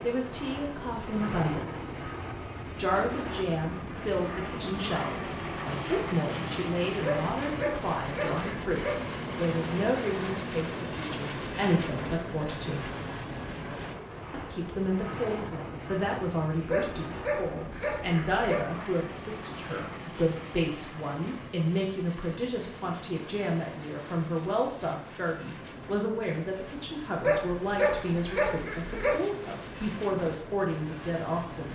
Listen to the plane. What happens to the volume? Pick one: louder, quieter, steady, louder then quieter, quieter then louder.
quieter.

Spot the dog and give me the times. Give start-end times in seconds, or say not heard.
7.0-9.0, 16.7-18.6, 27.2-29.2.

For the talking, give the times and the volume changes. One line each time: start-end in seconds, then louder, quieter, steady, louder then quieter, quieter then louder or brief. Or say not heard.
0.0-1.9 brief
2.8-12.9 steady
14.3-31.7 steady.